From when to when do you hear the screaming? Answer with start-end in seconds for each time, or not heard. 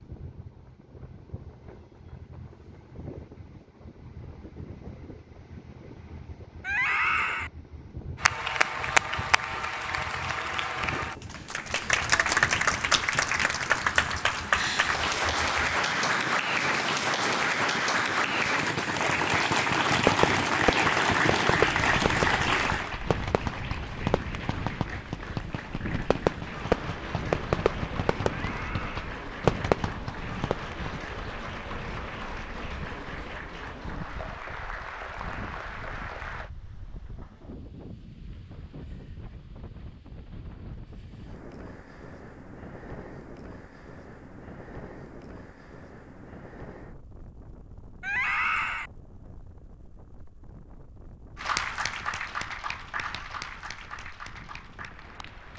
6.6-7.5, 28.4-29.1, 48.0-48.9.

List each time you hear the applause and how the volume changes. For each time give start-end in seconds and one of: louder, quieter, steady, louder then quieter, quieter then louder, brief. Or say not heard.
8.2-36.5 quieter
51.4-55.5 quieter.